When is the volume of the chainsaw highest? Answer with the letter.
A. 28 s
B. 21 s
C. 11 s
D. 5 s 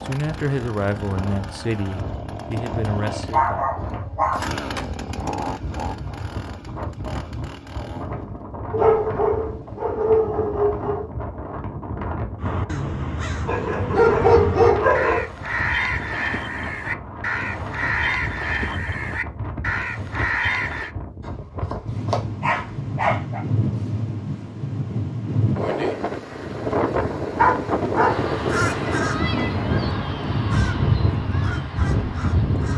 D.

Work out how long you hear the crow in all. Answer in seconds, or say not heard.
13 s.